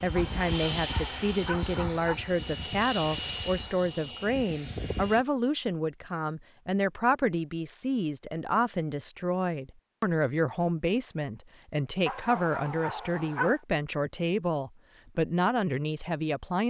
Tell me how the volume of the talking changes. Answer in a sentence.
The loudness of the talking stays about the same.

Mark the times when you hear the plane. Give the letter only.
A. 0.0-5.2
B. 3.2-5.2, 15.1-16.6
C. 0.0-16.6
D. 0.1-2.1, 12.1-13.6
A.